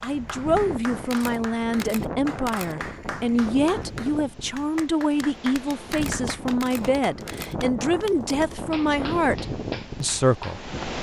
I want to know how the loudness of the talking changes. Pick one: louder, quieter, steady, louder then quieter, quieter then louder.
steady.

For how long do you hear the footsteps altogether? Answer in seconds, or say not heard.
not heard.